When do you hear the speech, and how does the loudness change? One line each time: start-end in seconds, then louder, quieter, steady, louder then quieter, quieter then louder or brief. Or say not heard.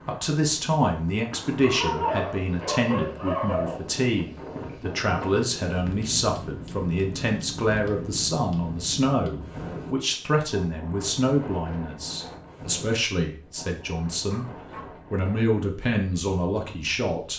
0.1-17.3 steady.